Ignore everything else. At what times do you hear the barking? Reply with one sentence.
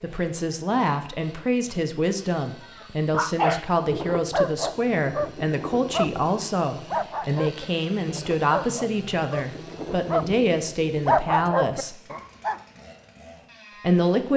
The barking can be heard from 3.1 to 12.6 s.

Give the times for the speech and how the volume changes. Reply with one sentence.
You can hear the speech from 0.0 to 12.0 s, at a steady volume; and briefly from 13.8 to 14.3 s.